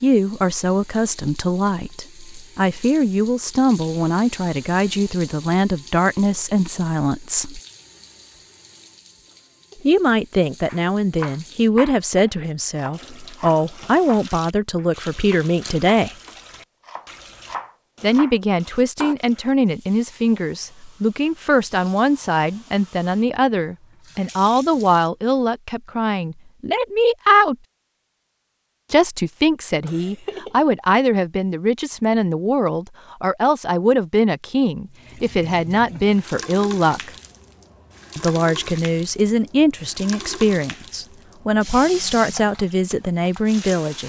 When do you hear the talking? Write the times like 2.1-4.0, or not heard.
0.0-7.6, 9.8-16.1, 18.0-27.6, 28.9-37.1, 38.1-44.0.